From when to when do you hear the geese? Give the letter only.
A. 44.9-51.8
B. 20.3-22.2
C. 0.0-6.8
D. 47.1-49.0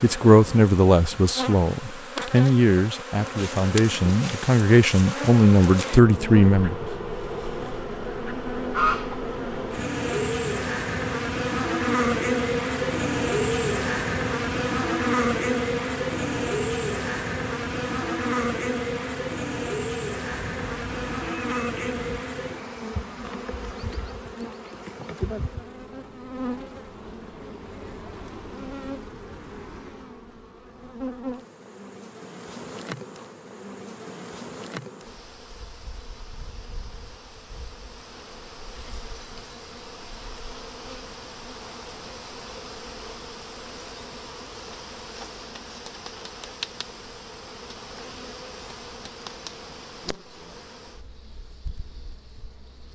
B.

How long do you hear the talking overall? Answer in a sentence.
You can hear the talking for 7 seconds altogether.